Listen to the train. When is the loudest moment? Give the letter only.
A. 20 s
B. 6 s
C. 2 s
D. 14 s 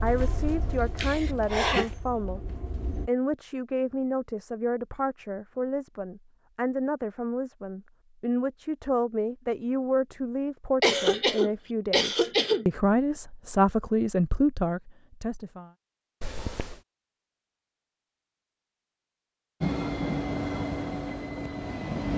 A.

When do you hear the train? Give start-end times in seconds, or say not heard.
0.0-3.1, 19.6-22.1.